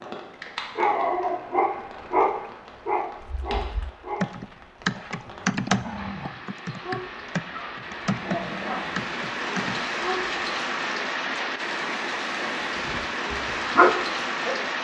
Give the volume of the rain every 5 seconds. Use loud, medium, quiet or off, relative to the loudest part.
quiet, medium, loud.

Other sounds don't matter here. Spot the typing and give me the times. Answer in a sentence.
You can hear the typing from 3.2 to 9.8 s.